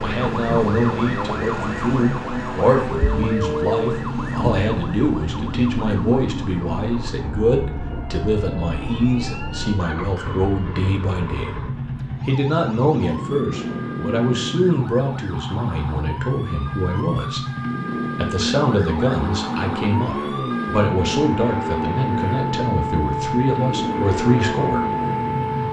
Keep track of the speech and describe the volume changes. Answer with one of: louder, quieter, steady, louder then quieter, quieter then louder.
steady.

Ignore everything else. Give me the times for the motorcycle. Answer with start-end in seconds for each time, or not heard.
0.0-25.6.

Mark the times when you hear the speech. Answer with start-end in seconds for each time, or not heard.
0.0-11.6, 12.2-17.4, 18.1-24.9.